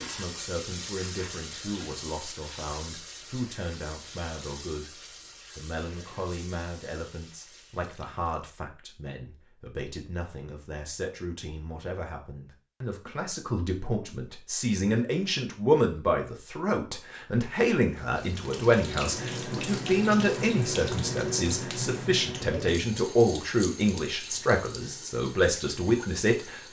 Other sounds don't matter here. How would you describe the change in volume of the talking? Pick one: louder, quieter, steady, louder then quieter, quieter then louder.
louder.